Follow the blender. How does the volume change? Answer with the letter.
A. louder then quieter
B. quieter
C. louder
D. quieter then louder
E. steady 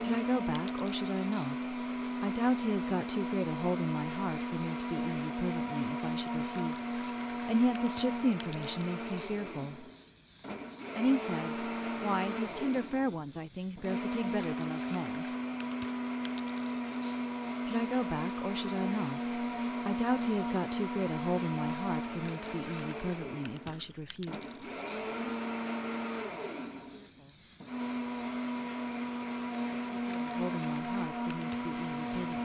E.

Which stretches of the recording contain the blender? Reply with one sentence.
You can hear the blender from 0.0 to 32.4 s.